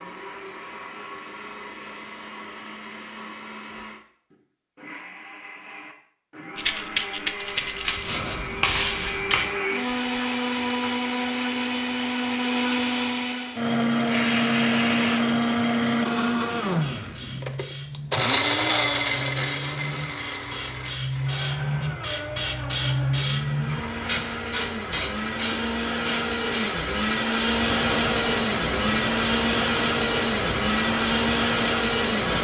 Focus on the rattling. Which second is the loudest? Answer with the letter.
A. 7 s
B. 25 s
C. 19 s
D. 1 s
A.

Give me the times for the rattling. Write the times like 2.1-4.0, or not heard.
6.5-8.1.